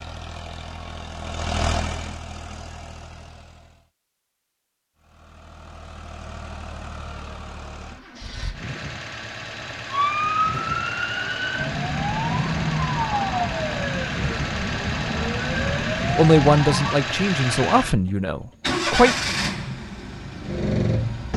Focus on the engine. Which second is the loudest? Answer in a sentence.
The loudest moment of the engine is at 19 seconds.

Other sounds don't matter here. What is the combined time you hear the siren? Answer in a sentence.
You can hear the siren for 7 seconds altogether.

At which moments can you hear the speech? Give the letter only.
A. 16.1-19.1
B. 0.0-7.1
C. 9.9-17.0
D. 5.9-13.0
A.